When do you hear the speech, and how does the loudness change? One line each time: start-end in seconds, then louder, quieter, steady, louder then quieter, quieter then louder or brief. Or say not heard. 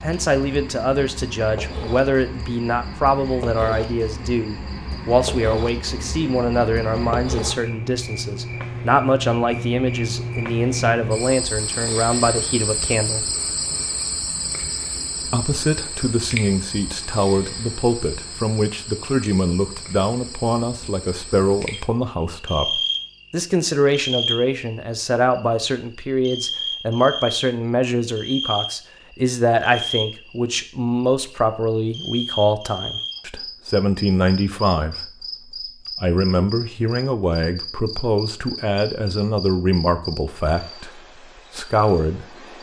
0.0-13.2 steady
15.2-42.5 steady.